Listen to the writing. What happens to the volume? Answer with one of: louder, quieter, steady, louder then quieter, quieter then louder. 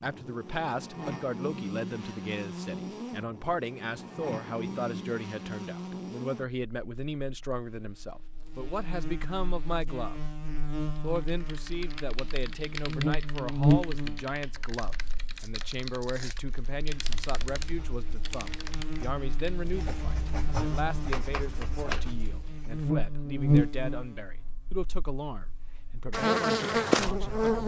louder.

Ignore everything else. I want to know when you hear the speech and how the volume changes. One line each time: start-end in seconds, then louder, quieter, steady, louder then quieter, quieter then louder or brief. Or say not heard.
0.0-10.2 steady
11.0-27.6 steady.